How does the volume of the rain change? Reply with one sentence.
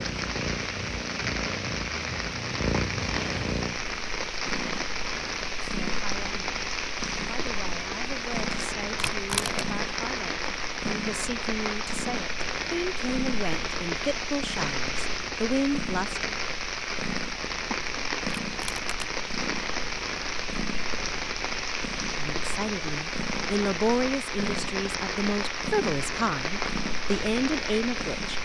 The loudness of the rain stays about the same.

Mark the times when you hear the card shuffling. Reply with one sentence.
The card shuffling can be heard from 8.9 to 9.7 s and from 18.4 to 19.1 s.